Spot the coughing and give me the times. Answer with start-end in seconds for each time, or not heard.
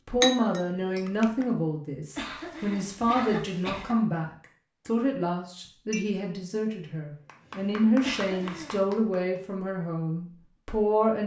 2.1-4.0, 8.0-8.8.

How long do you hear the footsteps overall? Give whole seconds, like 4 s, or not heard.
not heard.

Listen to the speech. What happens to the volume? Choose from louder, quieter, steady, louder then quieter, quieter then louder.
steady.